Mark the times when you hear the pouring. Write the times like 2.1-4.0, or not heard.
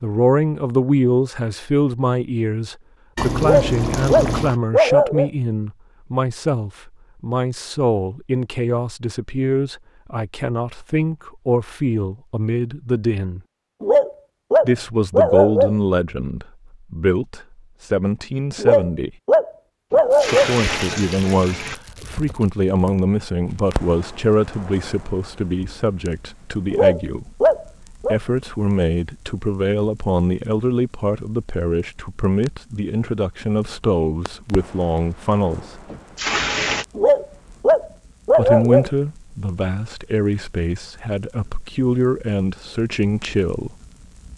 3.1-4.5, 19.9-21.8, 35.9-36.9.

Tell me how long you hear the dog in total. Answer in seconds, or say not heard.
9 s.